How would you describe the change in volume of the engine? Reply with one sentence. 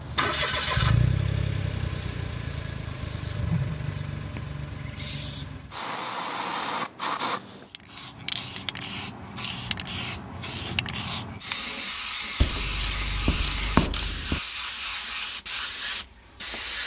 The volume of the engine goes down.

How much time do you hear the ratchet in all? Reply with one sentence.
You can hear the ratchet for 2 seconds altogether.